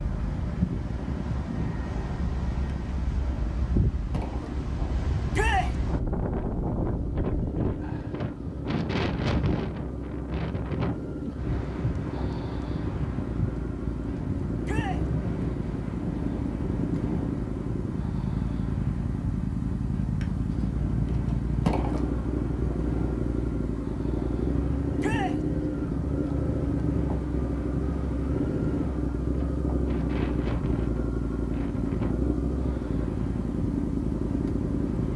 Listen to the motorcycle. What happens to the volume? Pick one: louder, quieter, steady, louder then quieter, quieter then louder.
louder.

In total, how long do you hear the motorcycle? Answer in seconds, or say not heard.
35 s.